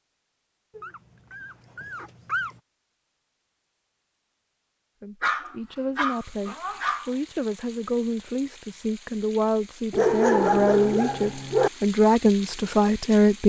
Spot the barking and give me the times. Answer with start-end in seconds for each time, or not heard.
0.8-2.6, 5.2-7.1, 9.9-11.7.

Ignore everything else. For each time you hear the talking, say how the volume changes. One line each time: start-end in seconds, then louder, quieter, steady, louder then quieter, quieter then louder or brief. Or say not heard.
5.0-13.4 louder.